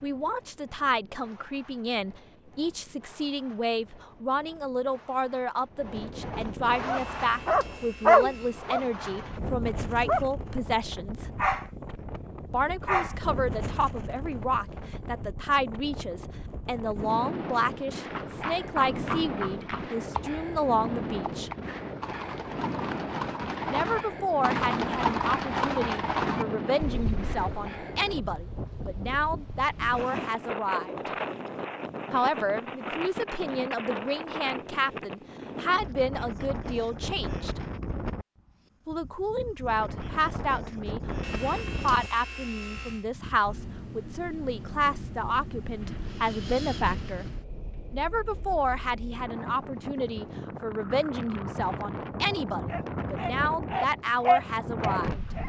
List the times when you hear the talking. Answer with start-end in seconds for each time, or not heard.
0.0-11.2, 12.5-21.5, 23.7-30.9, 32.1-37.6, 38.9-47.2, 47.9-55.2.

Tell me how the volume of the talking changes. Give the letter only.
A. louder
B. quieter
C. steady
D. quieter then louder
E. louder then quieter
C.